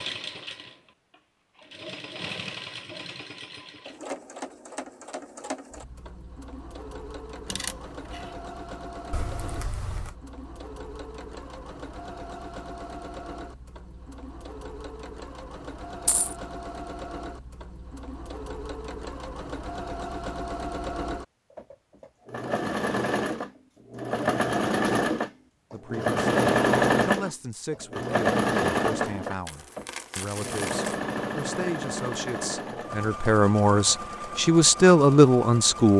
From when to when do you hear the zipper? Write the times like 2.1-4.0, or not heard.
9.1-10.2.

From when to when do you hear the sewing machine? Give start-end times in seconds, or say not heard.
0.0-35.9.